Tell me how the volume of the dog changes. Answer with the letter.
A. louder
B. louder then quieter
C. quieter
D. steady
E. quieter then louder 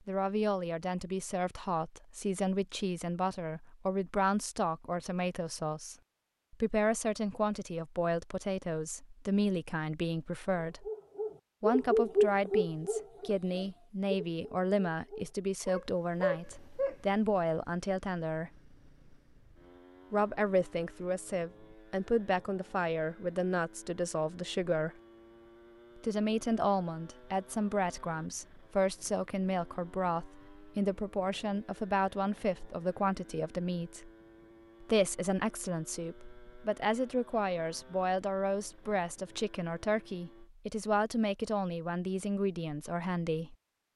E.